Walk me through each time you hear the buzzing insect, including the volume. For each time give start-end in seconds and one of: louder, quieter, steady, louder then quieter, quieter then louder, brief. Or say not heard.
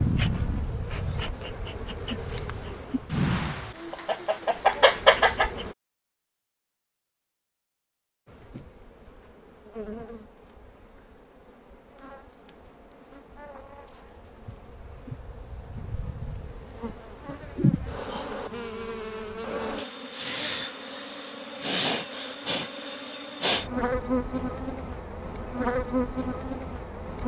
0.0-5.8 quieter then louder
8.2-27.2 louder.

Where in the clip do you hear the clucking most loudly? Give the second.
5 s.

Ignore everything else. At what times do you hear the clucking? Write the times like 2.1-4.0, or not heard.
3.1-5.5.